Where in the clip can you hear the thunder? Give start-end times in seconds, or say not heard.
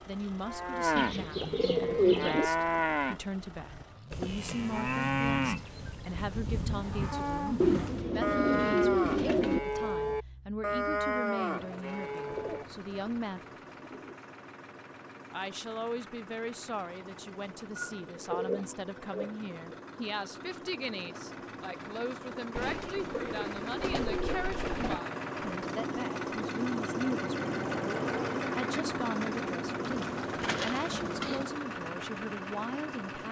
not heard.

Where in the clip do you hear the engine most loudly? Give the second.
28 s.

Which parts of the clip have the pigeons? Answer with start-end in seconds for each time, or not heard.
0.9-2.5, 7.6-9.6, 12.2-14.2, 17.8-19.8, 22.6-25.0, 29.8-31.4.